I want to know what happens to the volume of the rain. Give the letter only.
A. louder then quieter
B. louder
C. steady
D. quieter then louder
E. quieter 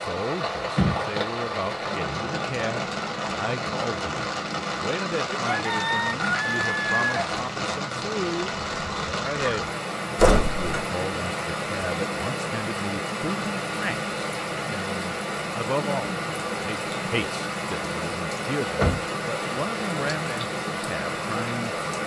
C.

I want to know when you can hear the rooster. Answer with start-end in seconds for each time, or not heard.
5.5-7.3.